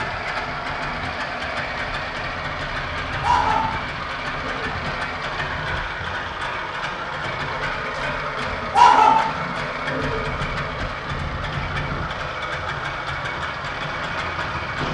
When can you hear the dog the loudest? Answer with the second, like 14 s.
9 s.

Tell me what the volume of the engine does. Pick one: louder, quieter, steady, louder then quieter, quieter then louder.
steady.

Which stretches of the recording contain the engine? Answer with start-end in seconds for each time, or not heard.
0.0-14.8.